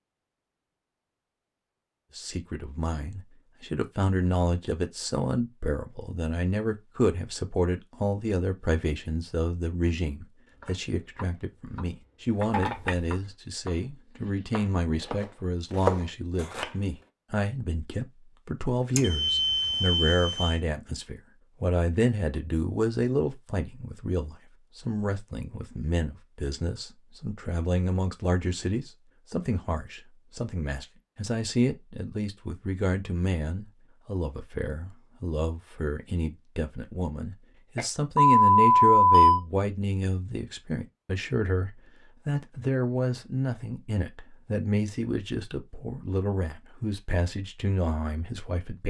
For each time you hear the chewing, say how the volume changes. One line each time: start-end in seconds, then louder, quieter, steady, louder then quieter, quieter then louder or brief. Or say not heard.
not heard.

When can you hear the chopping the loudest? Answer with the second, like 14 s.
16 s.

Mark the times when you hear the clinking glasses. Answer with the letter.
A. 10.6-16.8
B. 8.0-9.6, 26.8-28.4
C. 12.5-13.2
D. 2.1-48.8
C.